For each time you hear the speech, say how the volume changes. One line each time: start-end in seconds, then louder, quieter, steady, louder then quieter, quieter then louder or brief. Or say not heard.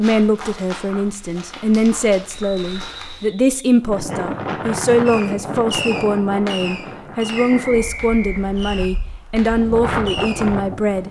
0.0-11.0 steady.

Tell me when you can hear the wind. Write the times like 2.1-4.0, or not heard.
3.9-11.0.